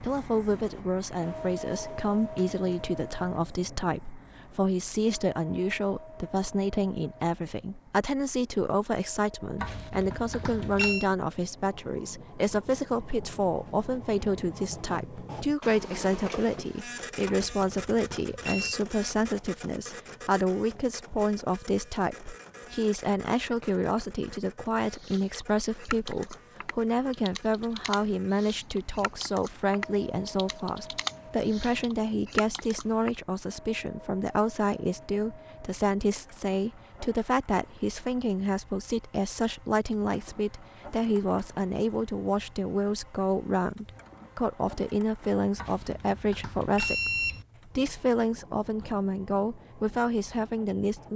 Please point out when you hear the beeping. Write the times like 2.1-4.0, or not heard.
9.6-11.1, 17.2-18.8, 45.5-47.5.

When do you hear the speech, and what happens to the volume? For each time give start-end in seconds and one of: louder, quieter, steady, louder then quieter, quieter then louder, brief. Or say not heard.
0.0-51.1 steady.